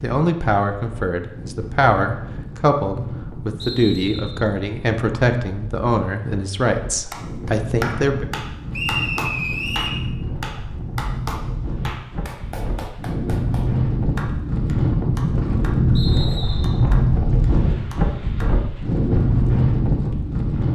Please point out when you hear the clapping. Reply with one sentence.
The clapping can be heard from 7.0 to 18.6 s.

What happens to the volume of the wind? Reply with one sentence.
The volume of the wind goes up.